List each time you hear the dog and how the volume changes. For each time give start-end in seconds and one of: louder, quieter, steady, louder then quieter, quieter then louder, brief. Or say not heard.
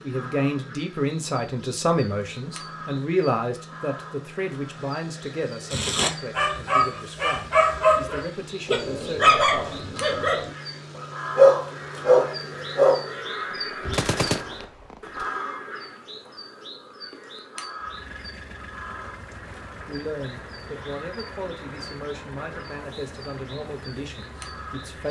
5.7-10.5 steady
11.3-13.1 brief.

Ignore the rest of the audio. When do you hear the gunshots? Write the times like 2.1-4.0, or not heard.
13.5-15.3.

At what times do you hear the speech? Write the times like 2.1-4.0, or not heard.
0.0-9.5, 19.9-25.0.